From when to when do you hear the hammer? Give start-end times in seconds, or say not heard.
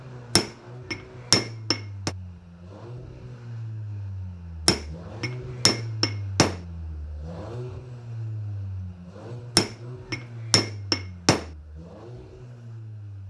0.3-2.1, 4.7-6.6, 9.6-11.4.